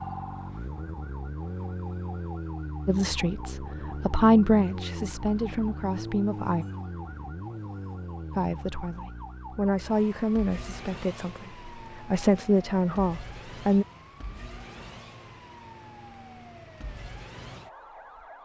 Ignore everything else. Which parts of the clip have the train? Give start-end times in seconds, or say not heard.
not heard.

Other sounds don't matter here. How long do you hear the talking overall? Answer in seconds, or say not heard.
9 s.